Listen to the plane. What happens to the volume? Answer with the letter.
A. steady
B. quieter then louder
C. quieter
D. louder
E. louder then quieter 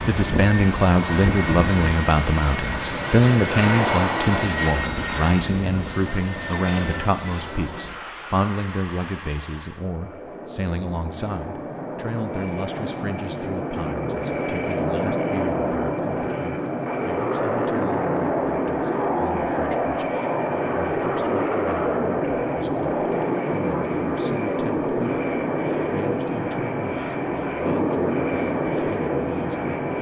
B.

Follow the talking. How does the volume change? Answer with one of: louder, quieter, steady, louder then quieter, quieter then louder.
quieter.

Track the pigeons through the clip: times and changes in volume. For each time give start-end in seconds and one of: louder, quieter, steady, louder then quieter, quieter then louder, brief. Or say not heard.
not heard.